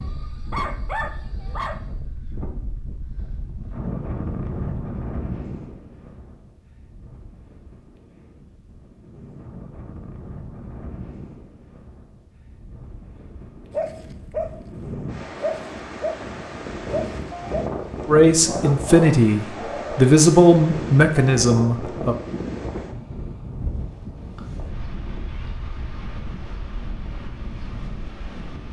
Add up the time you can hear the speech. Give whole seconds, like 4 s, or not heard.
4 s.